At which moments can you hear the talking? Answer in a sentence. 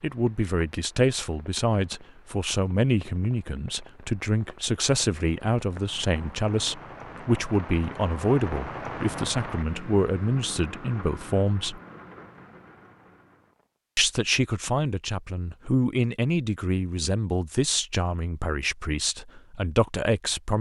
The talking can be heard from 0.0 to 11.8 s and from 13.9 to 20.5 s.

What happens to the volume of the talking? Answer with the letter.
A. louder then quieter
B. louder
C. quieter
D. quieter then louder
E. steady
E.